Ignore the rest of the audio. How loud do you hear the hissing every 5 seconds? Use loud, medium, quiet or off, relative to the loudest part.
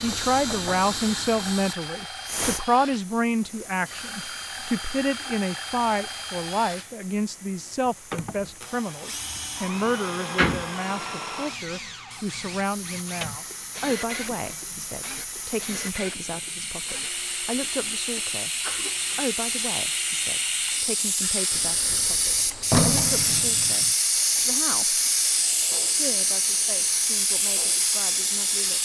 medium, quiet, quiet, medium, loud, loud.